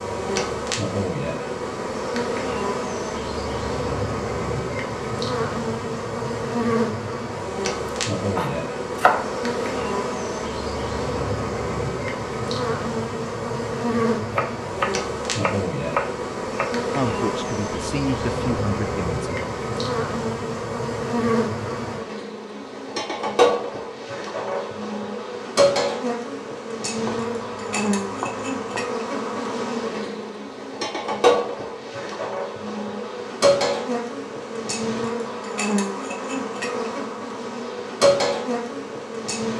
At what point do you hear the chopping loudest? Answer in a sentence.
The volume of the chopping peaks at 9 seconds.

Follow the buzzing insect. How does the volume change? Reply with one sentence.
The volume of the buzzing insect stays about the same.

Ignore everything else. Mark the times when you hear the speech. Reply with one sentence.
You can hear the speech from 16.9 to 19.4 s.